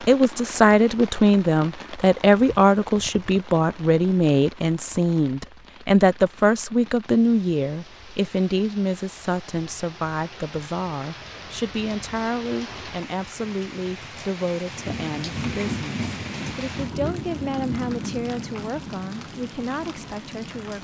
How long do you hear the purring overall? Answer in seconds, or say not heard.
not heard.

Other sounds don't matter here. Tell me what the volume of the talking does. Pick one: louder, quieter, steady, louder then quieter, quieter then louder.
quieter.